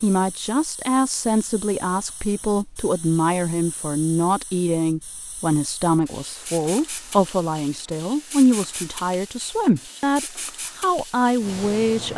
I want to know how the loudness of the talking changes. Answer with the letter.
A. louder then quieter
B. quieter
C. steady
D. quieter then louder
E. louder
C.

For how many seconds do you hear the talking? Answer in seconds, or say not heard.
12 s.